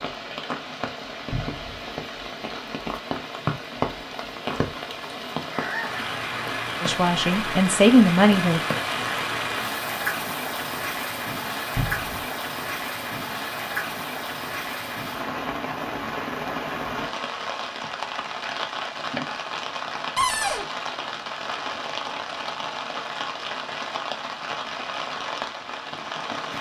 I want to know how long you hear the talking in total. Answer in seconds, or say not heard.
2 s.